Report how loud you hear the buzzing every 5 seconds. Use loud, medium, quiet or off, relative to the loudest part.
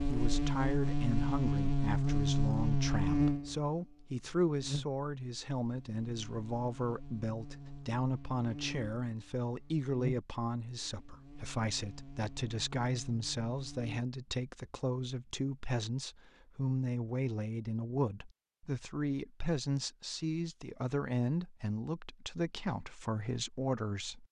loud, quiet, quiet, off, off.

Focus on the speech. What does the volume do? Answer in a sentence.
The loudness of the speech stays about the same.